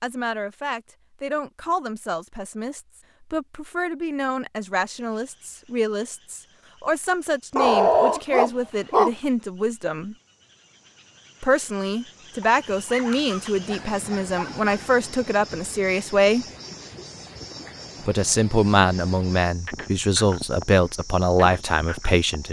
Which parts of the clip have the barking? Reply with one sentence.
You can hear the barking from 7.5 to 9.1 s and from 12.4 to 14.9 s.